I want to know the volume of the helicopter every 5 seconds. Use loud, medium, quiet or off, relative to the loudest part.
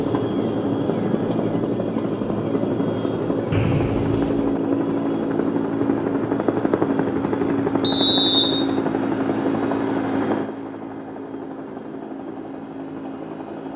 loud, loud, medium.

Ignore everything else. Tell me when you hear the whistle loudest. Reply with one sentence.
The volume of the whistle peaks at 8 seconds.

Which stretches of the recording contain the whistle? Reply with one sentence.
The whistle can be heard from 3.5 to 4.5 s and from 7.8 to 8.7 s.